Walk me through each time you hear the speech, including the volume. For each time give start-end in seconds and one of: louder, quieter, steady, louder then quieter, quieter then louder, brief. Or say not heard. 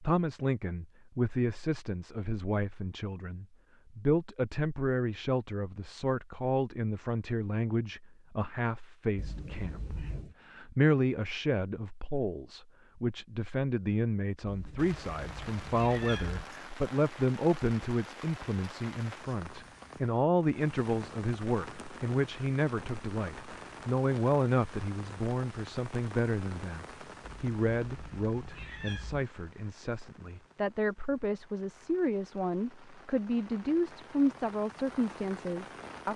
0.0-36.1 steady.